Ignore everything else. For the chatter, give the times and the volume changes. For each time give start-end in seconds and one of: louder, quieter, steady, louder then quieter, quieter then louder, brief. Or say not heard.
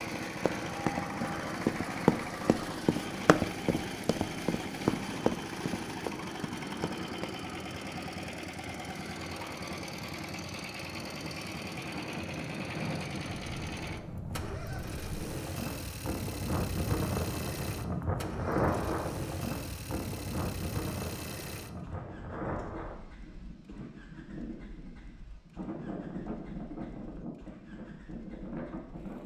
not heard.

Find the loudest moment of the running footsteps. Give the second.
2 s.